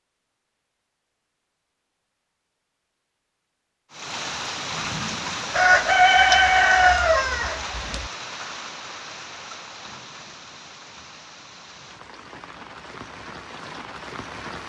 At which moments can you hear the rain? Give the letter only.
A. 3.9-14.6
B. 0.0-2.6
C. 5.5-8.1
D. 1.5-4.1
A.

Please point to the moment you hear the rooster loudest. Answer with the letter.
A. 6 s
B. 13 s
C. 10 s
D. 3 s
A.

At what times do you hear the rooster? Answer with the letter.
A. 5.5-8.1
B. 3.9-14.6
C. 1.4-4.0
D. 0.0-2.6
A.